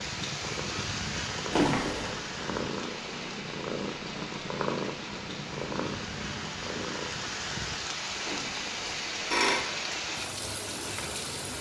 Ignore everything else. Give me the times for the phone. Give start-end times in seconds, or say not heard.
1.5-2.1, 8.2-9.7.